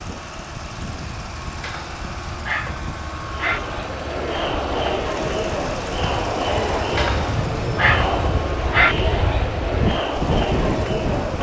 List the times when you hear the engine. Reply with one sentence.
You can hear the engine from 0.0 to 11.3 s.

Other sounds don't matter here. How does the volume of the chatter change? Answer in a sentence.
The loudness of the chatter stays about the same.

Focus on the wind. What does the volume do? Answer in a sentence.
The volume of the wind goes up.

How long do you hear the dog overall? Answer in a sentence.
The dog can be heard for 4 seconds in total.